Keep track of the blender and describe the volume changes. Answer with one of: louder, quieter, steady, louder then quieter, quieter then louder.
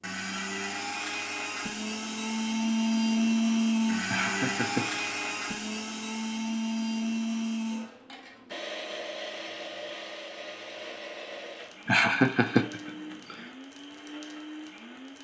quieter.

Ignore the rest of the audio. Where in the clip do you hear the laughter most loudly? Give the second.
12 s.